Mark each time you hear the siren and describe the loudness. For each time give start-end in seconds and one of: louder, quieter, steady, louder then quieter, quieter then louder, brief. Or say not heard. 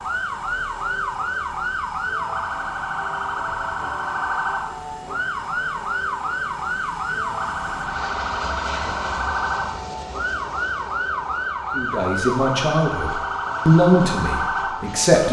0.0-15.2 steady.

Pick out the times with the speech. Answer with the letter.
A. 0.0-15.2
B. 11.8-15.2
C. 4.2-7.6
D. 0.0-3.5
B.